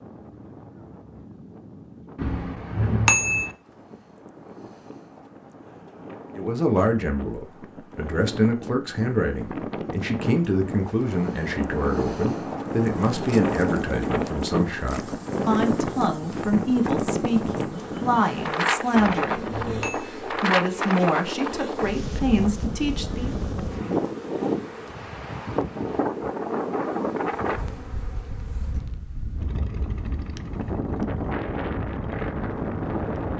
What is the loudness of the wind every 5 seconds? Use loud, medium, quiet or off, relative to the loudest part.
quiet, medium, loud, loud, loud, loud, loud.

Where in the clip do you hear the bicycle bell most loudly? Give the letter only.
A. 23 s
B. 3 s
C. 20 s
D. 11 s
B.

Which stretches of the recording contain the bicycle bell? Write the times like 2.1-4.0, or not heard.
2.1-3.5, 18.9-20.1.